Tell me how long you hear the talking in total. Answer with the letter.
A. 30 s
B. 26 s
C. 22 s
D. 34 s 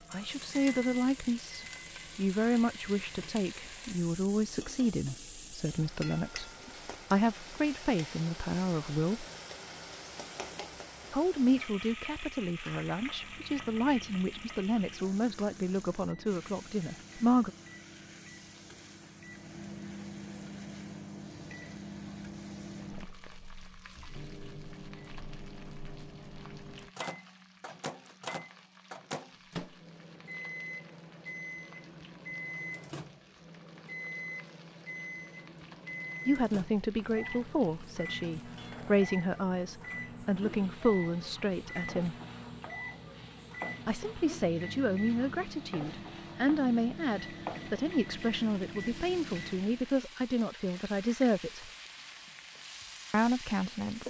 A.